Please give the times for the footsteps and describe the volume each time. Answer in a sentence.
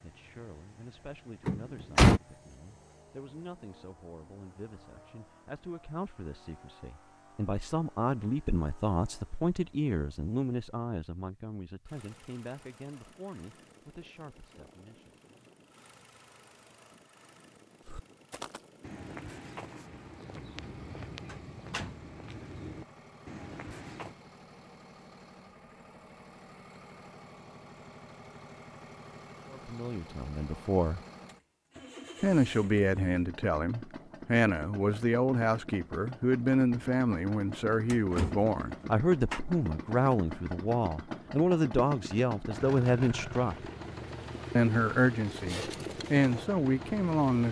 You can hear the footsteps from 17.8 to 24.1 s, at a steady volume.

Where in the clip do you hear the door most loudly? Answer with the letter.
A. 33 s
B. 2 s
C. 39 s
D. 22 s
B.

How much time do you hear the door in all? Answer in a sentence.
The door can be heard for 3 seconds in total.